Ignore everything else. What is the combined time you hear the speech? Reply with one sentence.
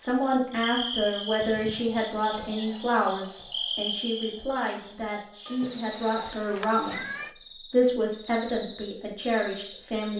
You can hear the speech for 10 seconds altogether.